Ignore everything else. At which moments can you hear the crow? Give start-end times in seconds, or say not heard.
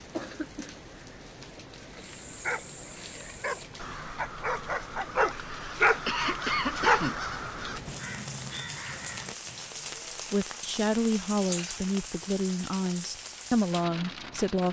2.1-9.7.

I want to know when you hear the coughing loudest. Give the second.
7 s.